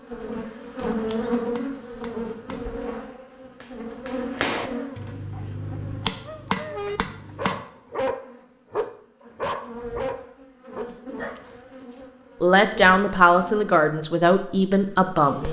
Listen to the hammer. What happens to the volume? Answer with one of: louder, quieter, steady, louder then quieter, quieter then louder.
louder.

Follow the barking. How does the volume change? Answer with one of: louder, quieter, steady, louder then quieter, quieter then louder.
louder then quieter.